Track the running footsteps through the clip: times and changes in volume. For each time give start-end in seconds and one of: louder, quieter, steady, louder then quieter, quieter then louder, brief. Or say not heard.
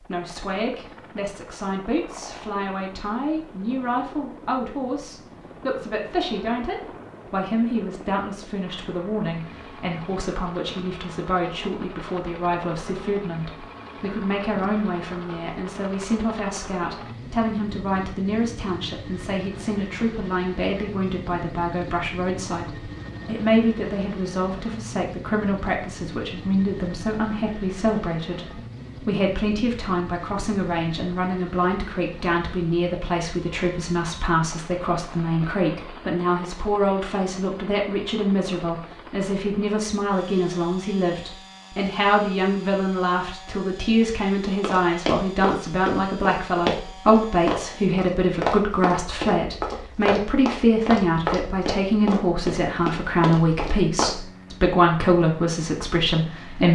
44.6-54.1 steady.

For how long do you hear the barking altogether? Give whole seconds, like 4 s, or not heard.
not heard.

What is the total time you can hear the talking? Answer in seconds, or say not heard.
57 s.